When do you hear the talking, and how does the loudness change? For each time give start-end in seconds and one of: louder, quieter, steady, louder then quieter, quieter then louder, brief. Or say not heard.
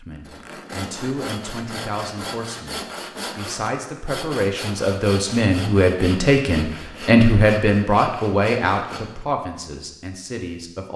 0.0-10.9 louder then quieter.